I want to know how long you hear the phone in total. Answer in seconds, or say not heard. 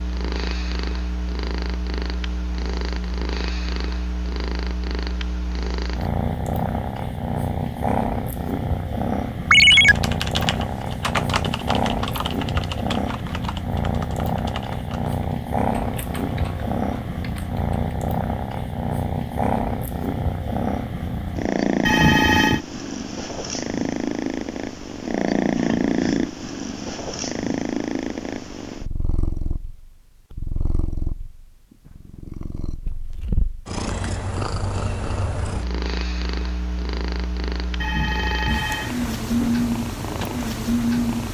3 s.